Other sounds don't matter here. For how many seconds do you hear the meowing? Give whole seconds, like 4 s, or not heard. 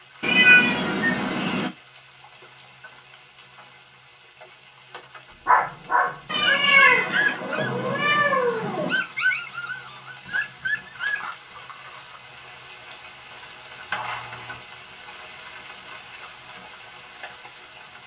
5 s.